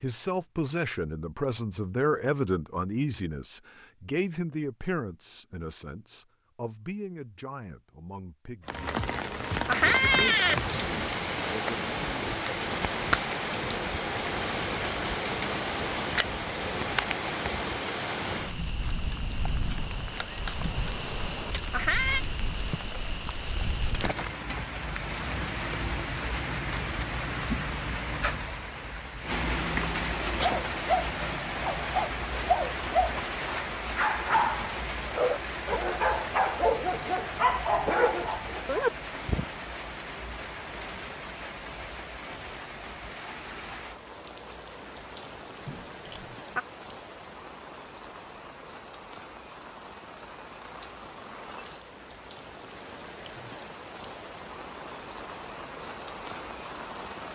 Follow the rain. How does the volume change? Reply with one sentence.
The loudness of the rain goes down.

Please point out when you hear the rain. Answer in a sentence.
The rain can be heard from 8.7 to 57.2 s.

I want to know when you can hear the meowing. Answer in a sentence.
You can hear the meowing from 9.7 to 10.6 s, from 21.7 to 22.2 s and from 45.6 to 46.6 s.